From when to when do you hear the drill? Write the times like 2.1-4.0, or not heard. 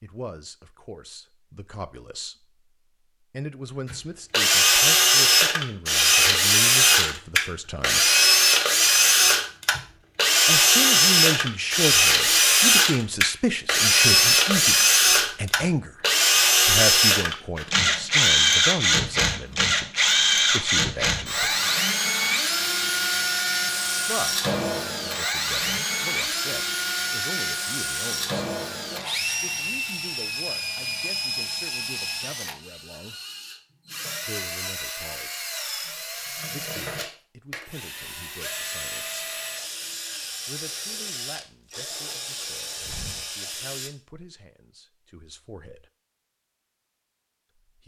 3.9-43.9.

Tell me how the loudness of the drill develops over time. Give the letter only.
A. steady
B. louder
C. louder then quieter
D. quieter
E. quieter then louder
D.